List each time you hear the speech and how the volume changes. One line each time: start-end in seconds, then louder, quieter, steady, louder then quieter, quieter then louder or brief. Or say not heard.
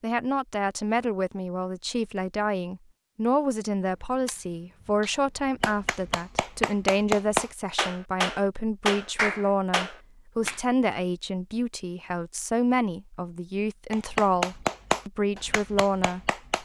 0.0-16.6 steady.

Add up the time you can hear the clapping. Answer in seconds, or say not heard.
8 s.